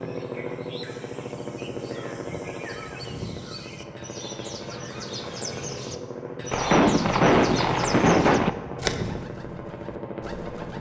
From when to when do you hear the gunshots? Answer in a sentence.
The gunshots can be heard from 6.5 to 8.5 s.